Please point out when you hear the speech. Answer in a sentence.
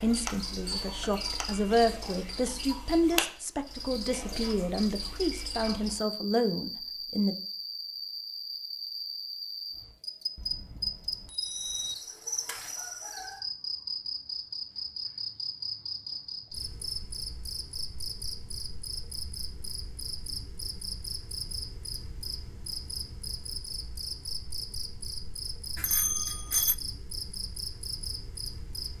You can hear the speech from 0.0 to 7.3 s.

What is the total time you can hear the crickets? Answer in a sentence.
You can hear the crickets for 29 seconds altogether.